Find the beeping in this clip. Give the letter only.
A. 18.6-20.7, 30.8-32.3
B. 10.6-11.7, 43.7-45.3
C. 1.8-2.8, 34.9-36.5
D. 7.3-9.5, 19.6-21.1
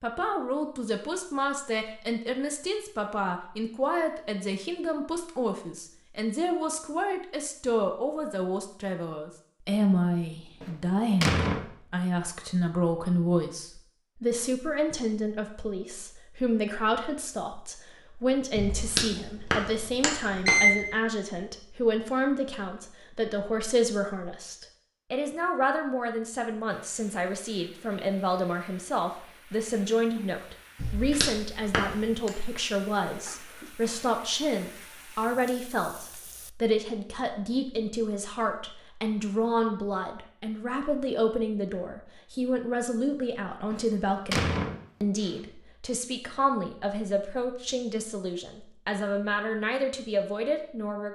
A.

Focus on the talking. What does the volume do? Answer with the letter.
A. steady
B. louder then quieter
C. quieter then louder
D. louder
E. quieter
A.